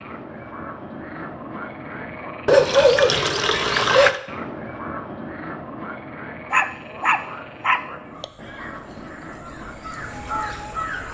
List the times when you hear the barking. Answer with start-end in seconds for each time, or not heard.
2.5-4.1, 6.5-8.2.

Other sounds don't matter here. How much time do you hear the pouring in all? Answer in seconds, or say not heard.
2 s.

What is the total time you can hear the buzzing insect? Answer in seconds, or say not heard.
not heard.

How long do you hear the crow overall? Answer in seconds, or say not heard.
3 s.